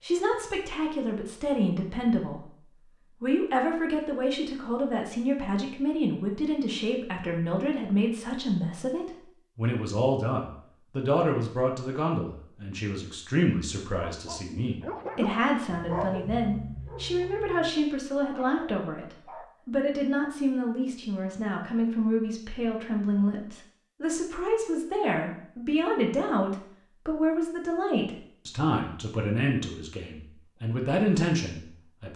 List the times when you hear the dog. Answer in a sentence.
You can hear the dog from 14.0 to 19.5 s.